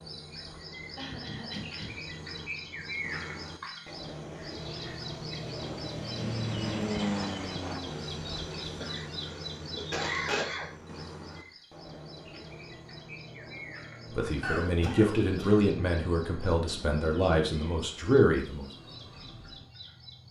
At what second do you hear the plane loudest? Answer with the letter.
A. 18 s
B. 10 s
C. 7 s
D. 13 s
C.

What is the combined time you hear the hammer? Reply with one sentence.
You can't hear the hammer here.